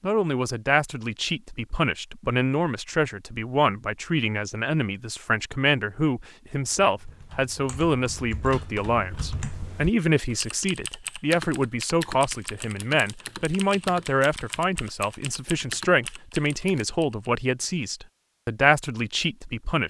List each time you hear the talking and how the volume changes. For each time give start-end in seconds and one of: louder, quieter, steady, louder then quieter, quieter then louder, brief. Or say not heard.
0.0-19.8 steady.